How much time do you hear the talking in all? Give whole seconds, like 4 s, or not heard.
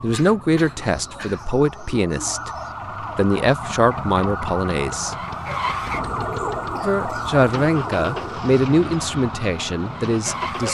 8 s.